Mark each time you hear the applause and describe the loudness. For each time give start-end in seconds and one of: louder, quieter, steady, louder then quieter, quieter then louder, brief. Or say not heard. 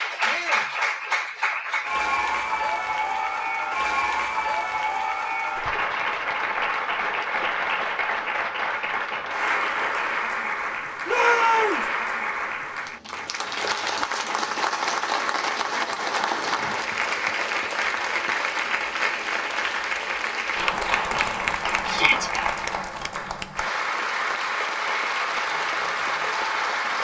0.0-26.9 steady.